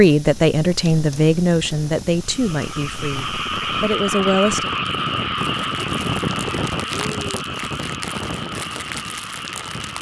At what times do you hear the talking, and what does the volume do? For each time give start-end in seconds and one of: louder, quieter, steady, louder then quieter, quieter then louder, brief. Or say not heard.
0.0-4.7 quieter then louder.